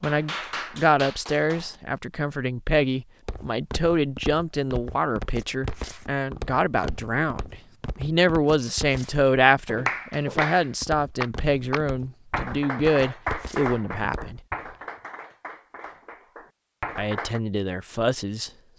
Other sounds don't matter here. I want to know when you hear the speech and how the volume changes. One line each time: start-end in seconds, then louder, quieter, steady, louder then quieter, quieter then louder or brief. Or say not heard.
0.0-14.4 steady
16.9-18.5 brief.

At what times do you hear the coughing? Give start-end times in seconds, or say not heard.
not heard.